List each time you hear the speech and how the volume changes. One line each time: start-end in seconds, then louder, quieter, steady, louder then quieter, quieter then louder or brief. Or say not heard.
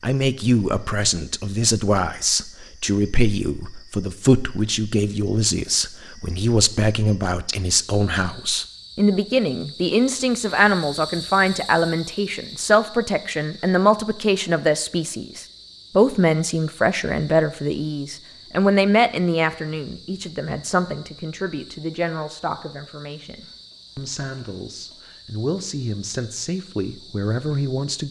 0.0-28.0 quieter.